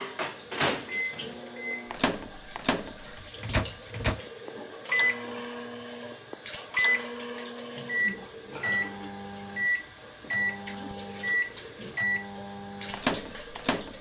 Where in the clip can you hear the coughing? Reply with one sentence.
You can't hear the coughing here.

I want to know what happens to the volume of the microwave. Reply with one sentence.
The volume of the microwave stays about the same.